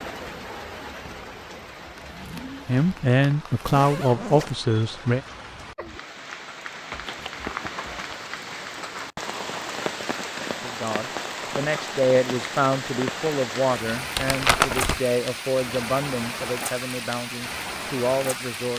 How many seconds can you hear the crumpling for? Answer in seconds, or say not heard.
4 s.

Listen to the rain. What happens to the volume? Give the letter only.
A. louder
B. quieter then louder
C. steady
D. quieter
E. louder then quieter
A.